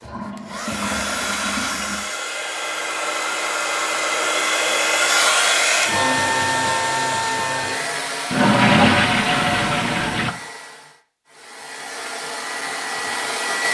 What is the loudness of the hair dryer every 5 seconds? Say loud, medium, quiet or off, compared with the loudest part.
loud, loud, medium.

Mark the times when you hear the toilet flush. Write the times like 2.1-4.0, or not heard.
0.0-2.0, 8.3-10.3.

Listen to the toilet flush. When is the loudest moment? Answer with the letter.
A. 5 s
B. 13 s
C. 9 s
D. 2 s
C.